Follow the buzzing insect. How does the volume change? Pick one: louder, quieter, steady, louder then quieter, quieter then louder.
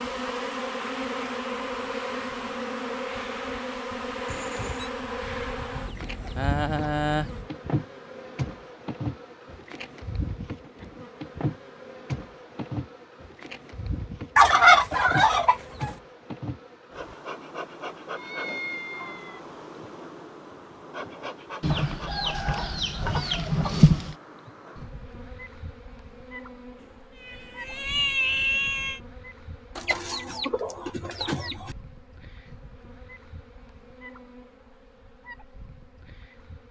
quieter.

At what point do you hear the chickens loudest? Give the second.
15 s.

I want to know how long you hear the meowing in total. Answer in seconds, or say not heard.
4 s.